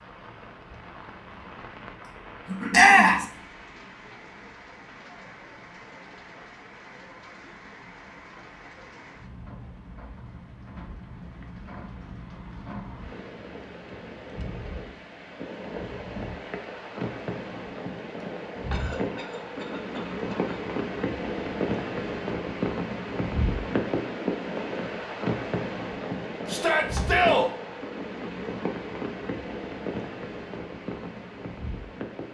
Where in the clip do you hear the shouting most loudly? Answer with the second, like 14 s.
3 s.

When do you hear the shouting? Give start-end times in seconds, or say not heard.
2.7-3.2, 26.4-27.5.